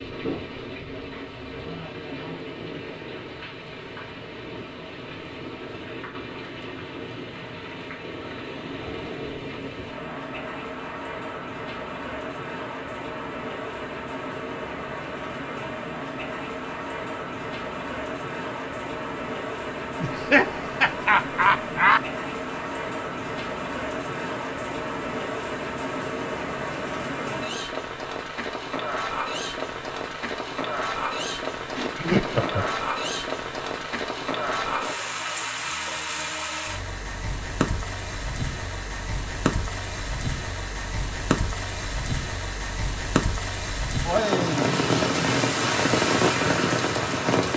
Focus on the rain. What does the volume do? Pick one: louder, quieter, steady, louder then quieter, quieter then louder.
louder.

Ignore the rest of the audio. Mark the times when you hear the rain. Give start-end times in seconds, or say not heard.
0.0-47.5.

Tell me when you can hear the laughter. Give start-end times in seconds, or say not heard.
20.0-22.0, 31.8-32.8.